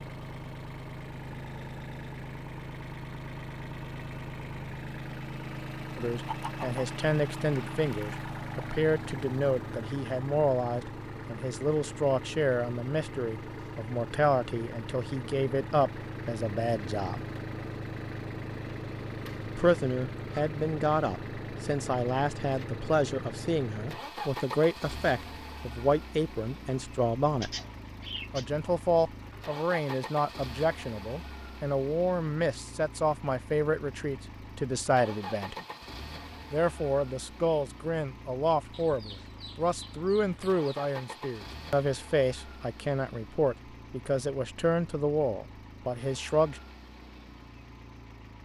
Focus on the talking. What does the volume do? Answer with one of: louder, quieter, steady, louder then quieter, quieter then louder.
steady.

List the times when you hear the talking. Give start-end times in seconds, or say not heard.
6.0-17.2, 19.4-27.5, 28.3-35.5, 36.5-46.6.